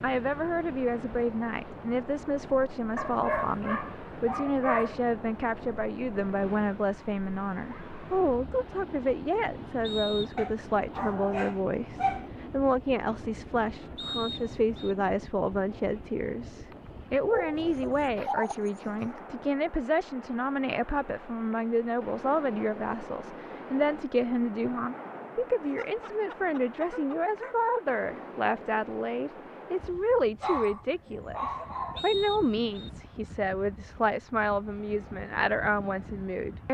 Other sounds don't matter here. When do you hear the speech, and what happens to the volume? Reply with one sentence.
You can hear the speech from 0.0 to 36.6 s, at a steady volume.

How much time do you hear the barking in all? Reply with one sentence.
You can hear the barking for 10 seconds altogether.